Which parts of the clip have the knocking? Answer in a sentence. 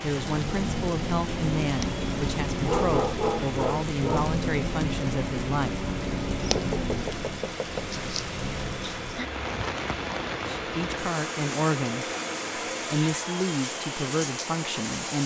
You can hear the knocking from 6.5 to 8.0 s.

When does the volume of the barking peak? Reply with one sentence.
The volume of the barking peaks at 3 seconds.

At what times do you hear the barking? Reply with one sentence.
You can hear the barking from 2.6 to 4.3 s.